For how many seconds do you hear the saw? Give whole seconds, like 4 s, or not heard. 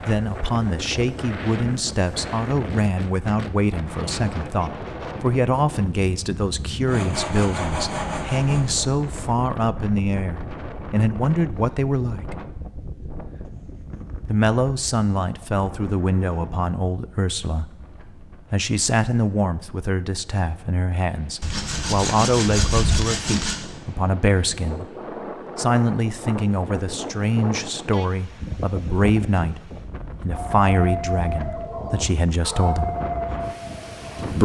4 s.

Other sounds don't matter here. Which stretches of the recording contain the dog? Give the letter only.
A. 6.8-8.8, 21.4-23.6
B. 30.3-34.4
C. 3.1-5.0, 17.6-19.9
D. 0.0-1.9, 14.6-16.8
B.